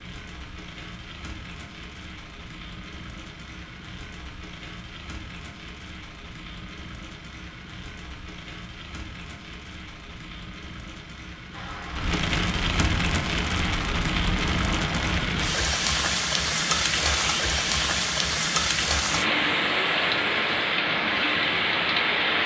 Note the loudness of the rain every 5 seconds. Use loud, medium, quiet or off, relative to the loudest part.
quiet, quiet, medium, loud, loud.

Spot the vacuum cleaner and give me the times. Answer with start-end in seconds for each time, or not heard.
11.5-22.4.